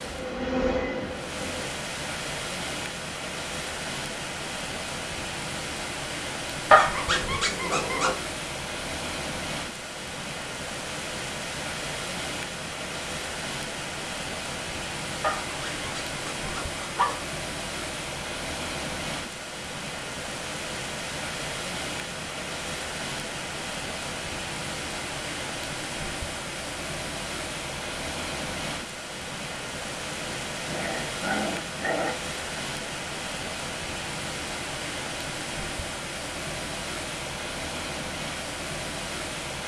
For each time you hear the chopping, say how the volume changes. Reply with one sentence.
The chopping can't be heard in this clip.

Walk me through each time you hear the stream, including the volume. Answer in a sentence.
The stream can be heard from 0.0 to 39.6 s, at a steady volume.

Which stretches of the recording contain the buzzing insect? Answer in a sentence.
The buzzing insect can be heard from 0.0 to 1.6 s.